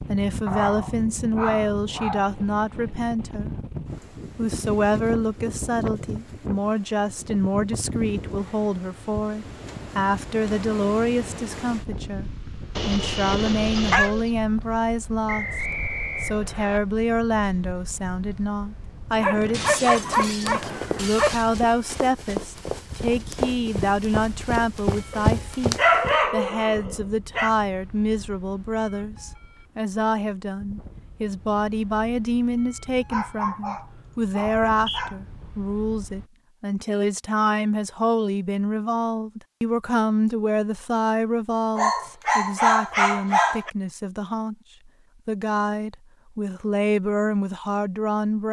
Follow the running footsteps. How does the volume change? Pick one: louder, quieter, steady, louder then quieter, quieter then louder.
louder.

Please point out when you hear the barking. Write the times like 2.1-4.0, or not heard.
0.5-2.3, 12.8-14.3, 19.2-21.5, 25.1-27.6, 33.1-35.2, 41.8-43.7.